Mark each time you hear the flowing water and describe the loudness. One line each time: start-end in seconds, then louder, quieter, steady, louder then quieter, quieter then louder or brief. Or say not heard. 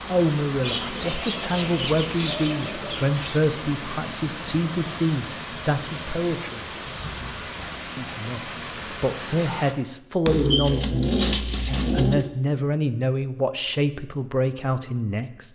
0.0-9.8 steady.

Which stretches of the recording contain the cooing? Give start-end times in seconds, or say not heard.
0.6-3.4, 10.2-12.2.